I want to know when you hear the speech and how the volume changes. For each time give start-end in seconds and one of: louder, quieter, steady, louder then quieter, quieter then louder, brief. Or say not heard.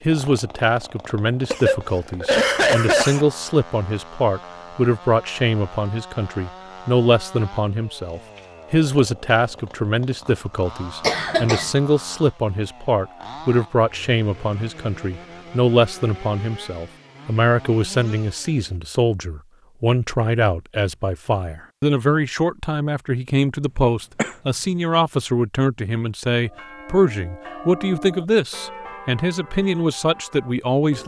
0.0-31.0 steady.